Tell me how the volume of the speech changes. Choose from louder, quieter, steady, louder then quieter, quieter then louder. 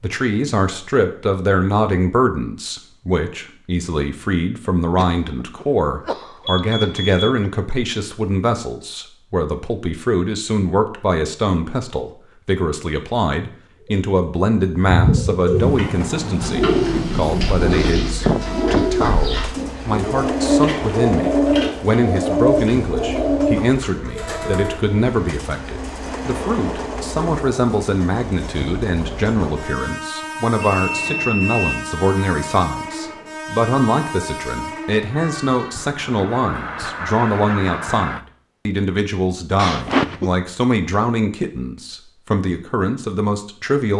steady.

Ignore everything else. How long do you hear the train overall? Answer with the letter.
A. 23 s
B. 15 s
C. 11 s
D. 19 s
A.